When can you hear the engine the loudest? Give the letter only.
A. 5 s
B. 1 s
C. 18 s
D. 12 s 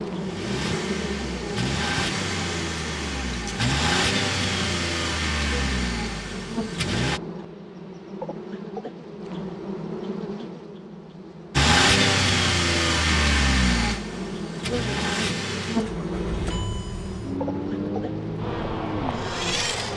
D.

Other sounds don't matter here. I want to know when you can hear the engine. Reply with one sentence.
You can hear the engine from 0.0 to 7.2 s and from 11.5 to 19.9 s.